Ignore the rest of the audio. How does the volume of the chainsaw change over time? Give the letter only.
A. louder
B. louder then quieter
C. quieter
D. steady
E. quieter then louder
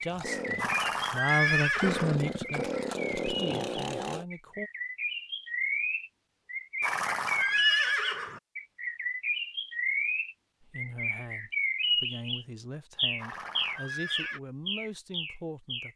E.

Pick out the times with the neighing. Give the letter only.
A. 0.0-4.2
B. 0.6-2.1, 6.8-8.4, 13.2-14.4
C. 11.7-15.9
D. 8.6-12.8
B.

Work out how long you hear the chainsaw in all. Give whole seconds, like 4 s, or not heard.
4 s.